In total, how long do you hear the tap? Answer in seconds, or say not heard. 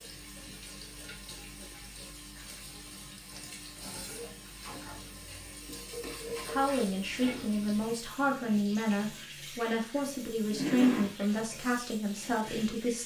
13 s.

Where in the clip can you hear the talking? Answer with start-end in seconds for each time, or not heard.
6.5-13.0.